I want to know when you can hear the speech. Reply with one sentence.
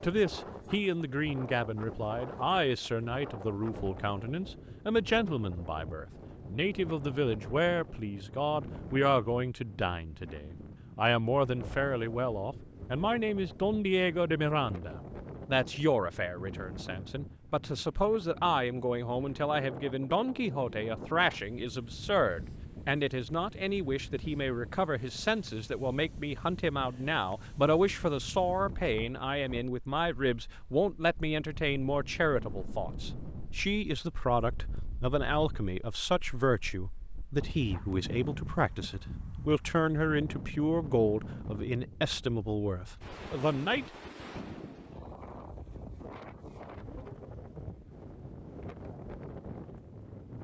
You can hear the speech from 0.0 to 43.9 s.